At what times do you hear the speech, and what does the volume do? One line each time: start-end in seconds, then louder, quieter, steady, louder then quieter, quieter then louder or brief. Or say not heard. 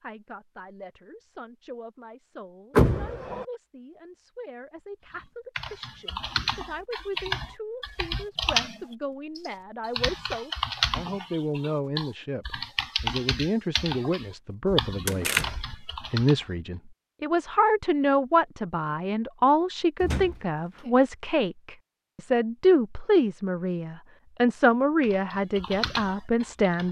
0.0-26.8 louder.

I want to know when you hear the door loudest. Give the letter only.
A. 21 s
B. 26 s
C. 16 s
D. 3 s
D.